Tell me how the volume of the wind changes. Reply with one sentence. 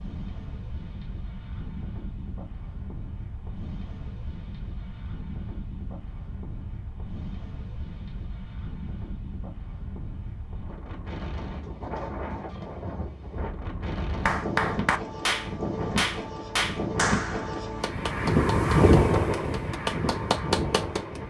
The volume of the wind goes up.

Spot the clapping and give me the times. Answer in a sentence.
You can hear the clapping from 14.2 to 21.2 s.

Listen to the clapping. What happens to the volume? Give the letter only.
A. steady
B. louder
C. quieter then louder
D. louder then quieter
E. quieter
C.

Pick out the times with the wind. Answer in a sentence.
You can hear the wind from 0.0 to 21.2 s.